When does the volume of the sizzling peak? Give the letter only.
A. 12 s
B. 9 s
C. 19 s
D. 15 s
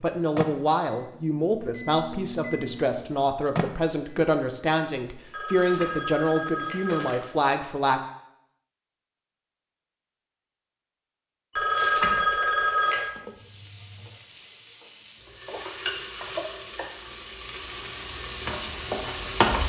C.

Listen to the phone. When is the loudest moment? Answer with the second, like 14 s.
12 s.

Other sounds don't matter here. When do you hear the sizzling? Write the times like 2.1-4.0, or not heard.
13.1-19.6.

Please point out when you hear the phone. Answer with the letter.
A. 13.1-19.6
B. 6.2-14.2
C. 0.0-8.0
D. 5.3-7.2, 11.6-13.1
D.